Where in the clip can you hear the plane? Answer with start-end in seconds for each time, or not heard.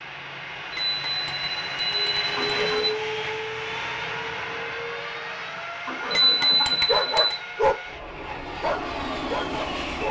0.0-10.0.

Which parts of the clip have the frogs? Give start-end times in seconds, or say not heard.
not heard.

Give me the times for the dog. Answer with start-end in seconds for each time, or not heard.
6.8-7.8, 8.6-10.0.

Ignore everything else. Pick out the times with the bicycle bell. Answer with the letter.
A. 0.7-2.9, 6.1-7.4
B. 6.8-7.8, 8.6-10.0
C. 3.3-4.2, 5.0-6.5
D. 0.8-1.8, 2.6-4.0
A.